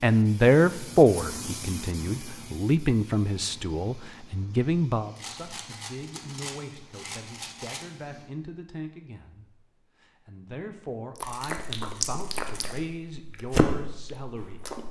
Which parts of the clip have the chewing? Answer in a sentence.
You can hear the chewing from 11.2 to 14.8 s.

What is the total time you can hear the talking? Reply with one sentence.
The talking can be heard for 15 seconds in total.